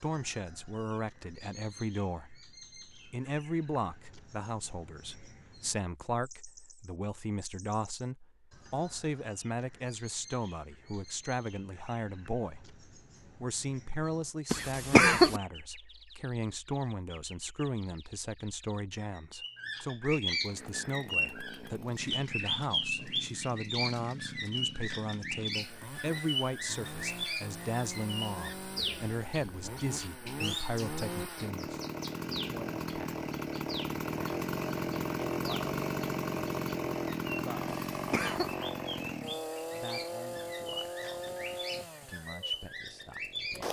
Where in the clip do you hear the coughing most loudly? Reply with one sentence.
The volume of the coughing peaks at 15 seconds.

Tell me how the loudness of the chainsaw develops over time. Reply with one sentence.
The loudness of the chainsaw goes up, then down.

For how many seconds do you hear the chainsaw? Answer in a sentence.
You can hear the chainsaw for 23 seconds altogether.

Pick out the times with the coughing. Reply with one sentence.
You can hear the coughing from 14.5 to 15.4 s and from 37.9 to 38.5 s.